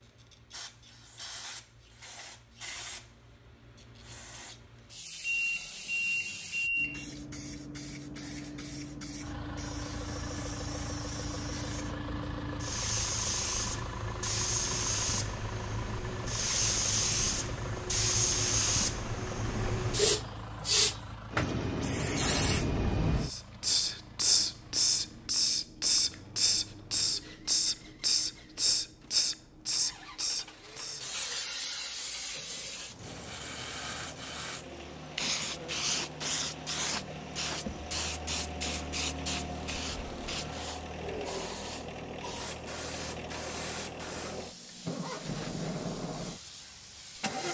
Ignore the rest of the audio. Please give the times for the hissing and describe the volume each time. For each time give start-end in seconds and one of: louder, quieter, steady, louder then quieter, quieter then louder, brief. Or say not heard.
0.0-47.4 louder then quieter.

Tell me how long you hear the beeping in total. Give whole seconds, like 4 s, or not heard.
2 s.